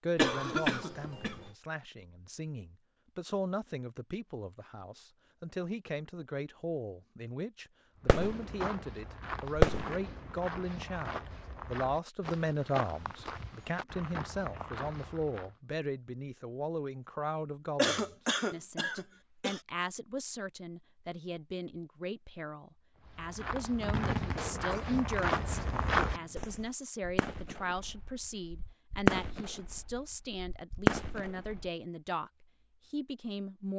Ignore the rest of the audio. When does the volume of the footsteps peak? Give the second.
26 s.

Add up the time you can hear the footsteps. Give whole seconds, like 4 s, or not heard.
11 s.